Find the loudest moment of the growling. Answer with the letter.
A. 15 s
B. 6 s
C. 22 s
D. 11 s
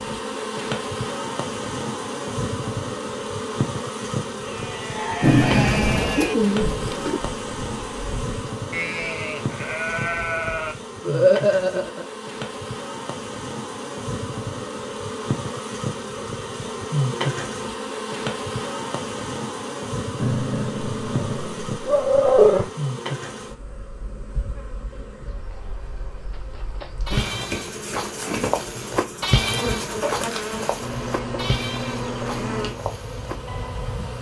C.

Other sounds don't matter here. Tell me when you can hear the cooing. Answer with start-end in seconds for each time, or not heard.
5.2-7.2.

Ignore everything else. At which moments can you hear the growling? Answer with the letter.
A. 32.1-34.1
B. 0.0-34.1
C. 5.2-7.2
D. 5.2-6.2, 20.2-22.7
D.